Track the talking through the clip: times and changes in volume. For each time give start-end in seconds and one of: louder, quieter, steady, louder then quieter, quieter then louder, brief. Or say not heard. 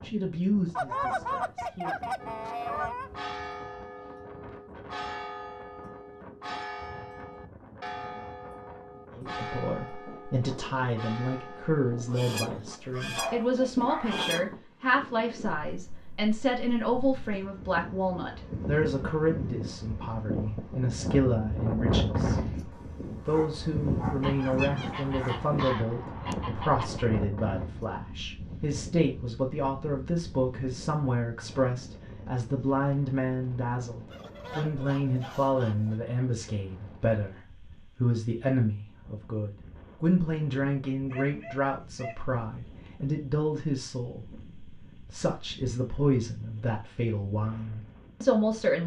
0.0-2.0 brief
9.2-22.4 steady
23.2-48.8 steady.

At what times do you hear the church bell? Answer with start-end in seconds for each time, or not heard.
2.2-12.8.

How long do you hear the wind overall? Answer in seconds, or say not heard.
49 s.